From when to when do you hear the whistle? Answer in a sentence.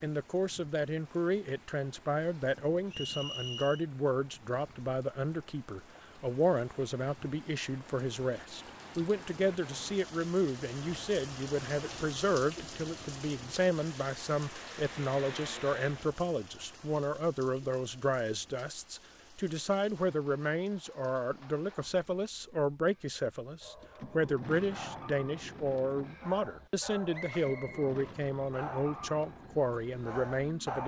The whistle can be heard from 2.9 to 3.9 s and from 27.1 to 27.9 s.